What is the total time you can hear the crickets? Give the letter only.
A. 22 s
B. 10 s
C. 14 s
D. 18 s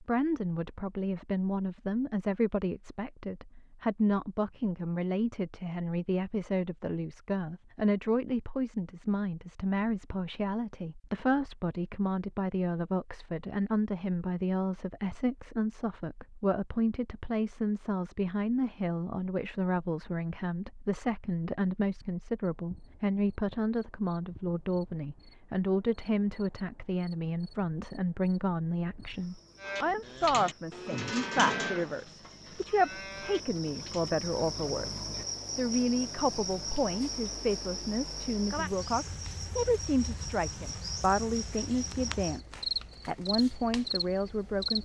A.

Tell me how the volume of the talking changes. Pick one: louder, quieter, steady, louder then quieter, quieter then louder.
steady.